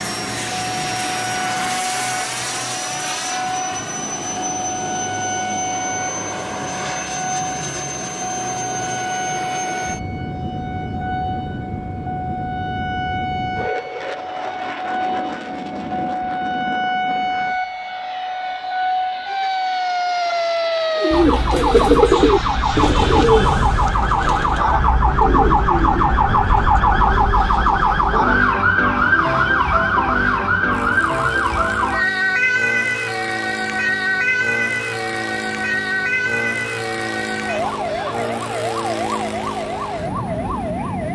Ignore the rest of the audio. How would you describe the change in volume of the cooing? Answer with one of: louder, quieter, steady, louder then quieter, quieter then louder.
quieter.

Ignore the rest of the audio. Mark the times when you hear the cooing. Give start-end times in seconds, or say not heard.
20.9-28.4.